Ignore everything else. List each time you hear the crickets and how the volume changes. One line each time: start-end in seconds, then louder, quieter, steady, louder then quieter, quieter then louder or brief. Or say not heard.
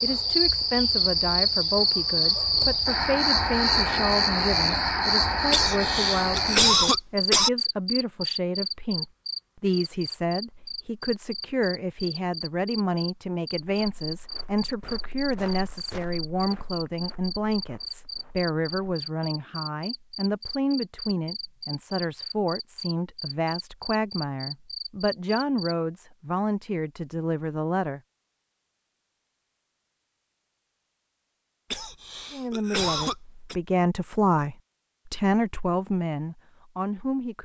0.0-25.8 quieter.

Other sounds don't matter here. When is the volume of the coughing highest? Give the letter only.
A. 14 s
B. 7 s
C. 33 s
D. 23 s
B.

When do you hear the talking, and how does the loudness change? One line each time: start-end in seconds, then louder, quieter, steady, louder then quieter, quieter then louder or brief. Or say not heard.
0.0-28.0 steady
32.3-37.4 louder then quieter.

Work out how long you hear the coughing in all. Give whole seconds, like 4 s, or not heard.
4 s.